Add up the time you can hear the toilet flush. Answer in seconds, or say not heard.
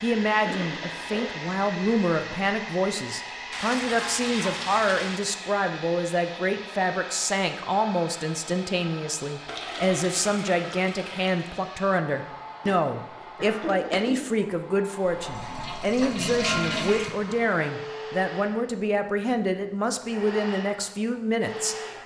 6 s.